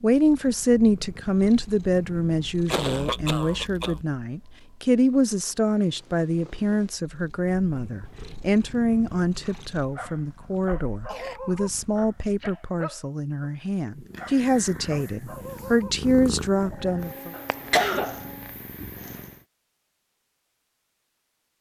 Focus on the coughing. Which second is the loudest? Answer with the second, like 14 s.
18 s.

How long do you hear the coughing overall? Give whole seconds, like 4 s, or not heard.
4 s.